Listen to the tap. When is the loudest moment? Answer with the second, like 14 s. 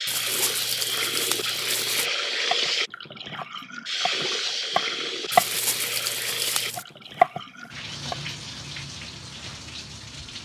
2 s.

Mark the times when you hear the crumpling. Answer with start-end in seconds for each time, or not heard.
0.1-2.1, 5.3-6.8.